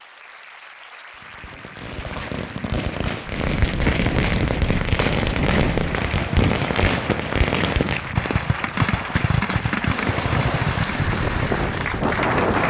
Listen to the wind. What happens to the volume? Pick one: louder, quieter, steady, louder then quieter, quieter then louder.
quieter then louder.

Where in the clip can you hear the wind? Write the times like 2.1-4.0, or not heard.
3.2-12.6.